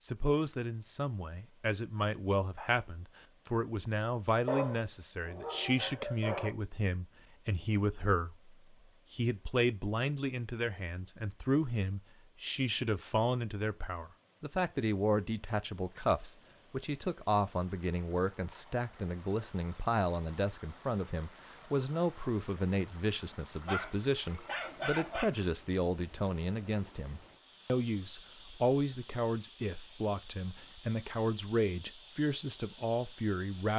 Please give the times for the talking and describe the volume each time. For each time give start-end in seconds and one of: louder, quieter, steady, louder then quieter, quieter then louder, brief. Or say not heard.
0.0-33.7 steady.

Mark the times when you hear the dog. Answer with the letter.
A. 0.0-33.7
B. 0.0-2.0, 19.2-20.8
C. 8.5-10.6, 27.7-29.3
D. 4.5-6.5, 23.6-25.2
D.